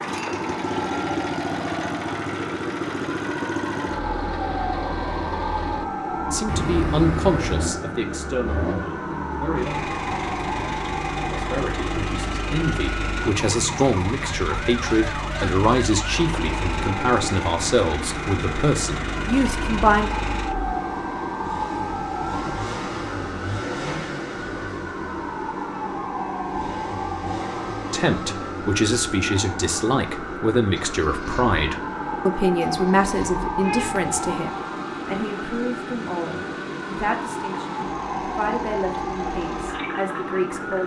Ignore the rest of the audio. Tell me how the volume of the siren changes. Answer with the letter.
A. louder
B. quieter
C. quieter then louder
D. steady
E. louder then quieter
D.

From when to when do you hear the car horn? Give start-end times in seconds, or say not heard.
6.5-7.8, 33.6-34.1.